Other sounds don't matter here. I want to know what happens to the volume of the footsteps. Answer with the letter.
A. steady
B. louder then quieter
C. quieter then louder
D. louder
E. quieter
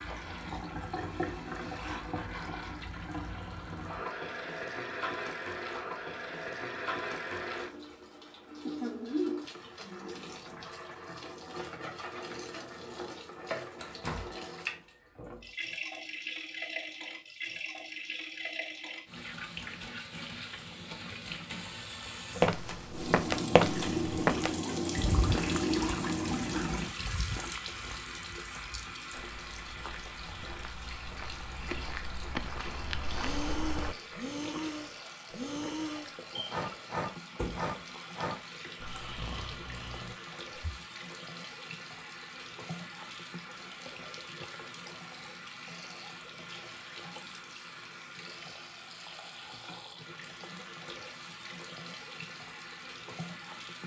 C.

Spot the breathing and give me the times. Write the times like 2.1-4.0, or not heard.
33.2-40.8.